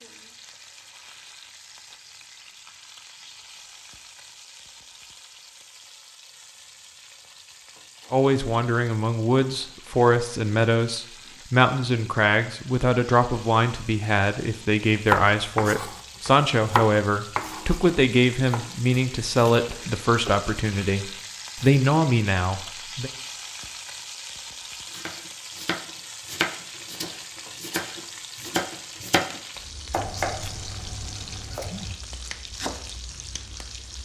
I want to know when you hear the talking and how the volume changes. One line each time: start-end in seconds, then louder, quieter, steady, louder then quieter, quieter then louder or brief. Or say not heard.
8.1-23.1 steady.